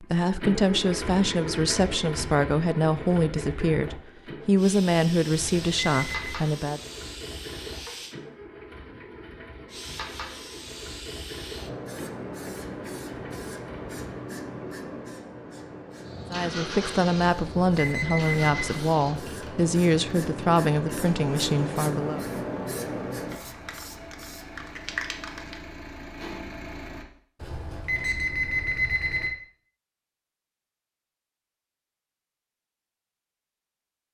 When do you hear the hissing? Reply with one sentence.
The hissing can be heard from 4.5 to 8.2 s and from 9.7 to 25.6 s.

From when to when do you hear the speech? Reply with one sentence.
You can hear the speech from 0.0 to 6.8 s and from 16.3 to 22.2 s.